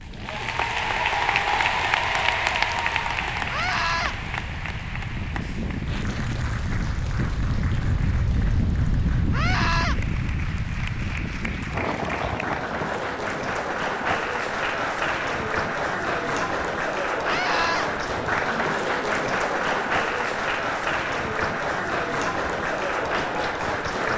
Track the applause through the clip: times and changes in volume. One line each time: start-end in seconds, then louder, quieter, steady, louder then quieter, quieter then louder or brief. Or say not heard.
0.0-24.1 quieter then louder.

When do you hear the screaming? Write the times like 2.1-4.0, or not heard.
3.5-4.2, 9.3-9.9, 17.2-17.9.